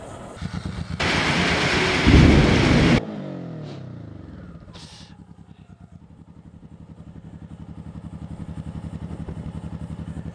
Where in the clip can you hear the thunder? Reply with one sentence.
The thunder can be heard from 1.0 to 3.0 s.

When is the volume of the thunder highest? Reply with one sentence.
The loudest moment of the thunder is at 2 seconds.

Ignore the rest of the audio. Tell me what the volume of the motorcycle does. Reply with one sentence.
The volume of the motorcycle goes down, then up.